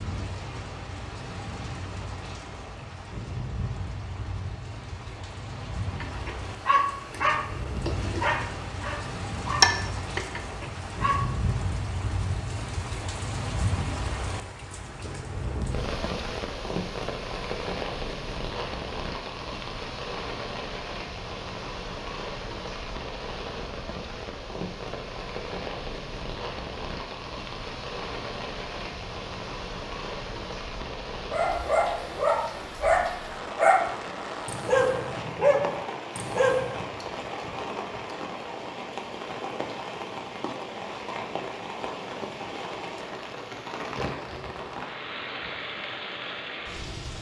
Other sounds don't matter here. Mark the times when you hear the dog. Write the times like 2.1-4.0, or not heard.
6.0-11.6, 31.3-36.8.